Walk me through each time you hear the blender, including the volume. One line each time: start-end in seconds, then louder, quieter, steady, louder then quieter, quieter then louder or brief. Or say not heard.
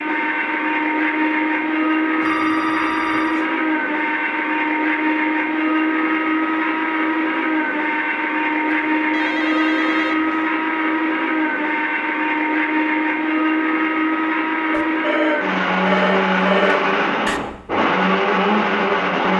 0.0-19.3 steady.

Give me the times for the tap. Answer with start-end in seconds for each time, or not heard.
not heard.